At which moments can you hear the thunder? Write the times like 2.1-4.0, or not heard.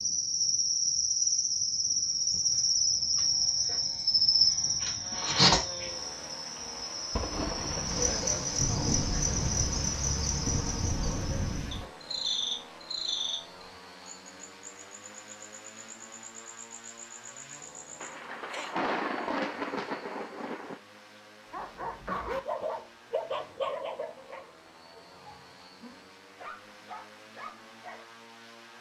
7.1-11.8, 18.0-20.8.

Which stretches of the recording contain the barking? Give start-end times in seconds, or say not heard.
21.4-28.1.